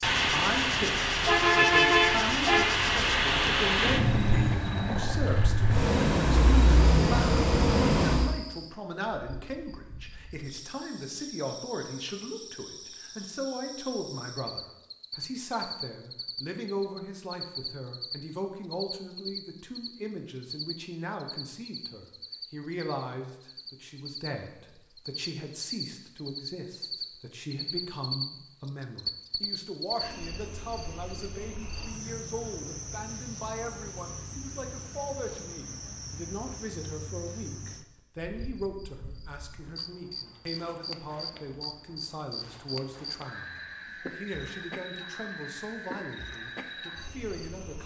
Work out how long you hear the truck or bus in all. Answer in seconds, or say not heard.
8 s.